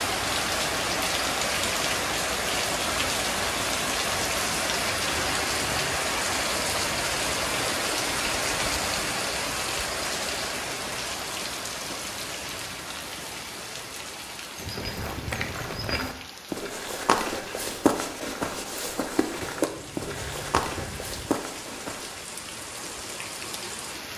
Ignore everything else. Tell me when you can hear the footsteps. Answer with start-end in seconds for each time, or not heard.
14.6-22.1.